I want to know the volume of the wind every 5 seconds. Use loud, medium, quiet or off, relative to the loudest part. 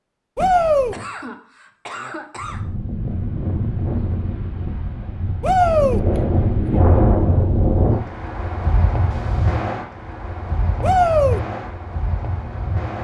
medium, loud, medium.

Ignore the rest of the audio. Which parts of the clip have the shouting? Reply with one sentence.
The shouting can be heard from 0.3 to 0.9 s, from 5.4 to 6.0 s and from 10.8 to 11.4 s.